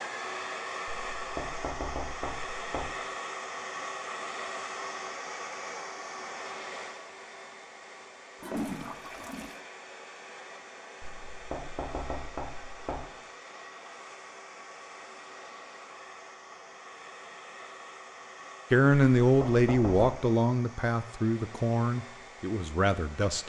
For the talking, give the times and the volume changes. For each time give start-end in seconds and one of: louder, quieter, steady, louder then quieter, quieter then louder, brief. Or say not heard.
18.7-23.4 quieter.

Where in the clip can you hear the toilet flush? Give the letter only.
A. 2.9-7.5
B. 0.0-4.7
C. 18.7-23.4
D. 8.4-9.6
D.